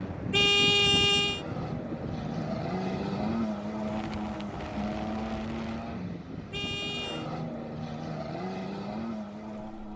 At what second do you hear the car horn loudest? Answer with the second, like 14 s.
1 s.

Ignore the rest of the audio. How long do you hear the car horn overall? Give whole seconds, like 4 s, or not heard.
2 s.